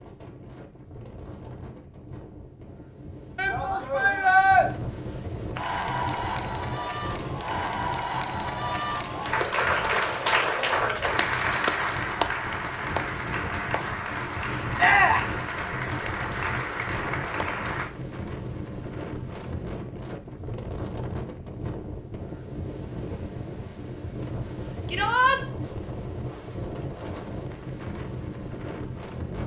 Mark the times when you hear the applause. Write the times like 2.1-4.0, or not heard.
5.5-17.9.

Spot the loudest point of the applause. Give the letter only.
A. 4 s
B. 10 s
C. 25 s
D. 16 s
B.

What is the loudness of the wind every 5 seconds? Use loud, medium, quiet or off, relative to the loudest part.
medium, loud, loud, loud, loud, loud.